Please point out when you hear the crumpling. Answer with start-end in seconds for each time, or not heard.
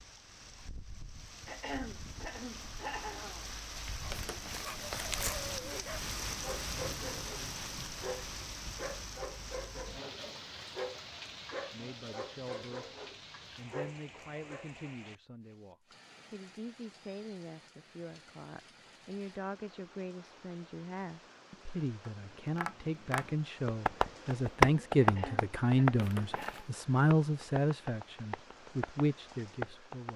4.1-5.4, 25.9-26.7.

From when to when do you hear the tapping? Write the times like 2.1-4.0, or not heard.
22.1-30.1.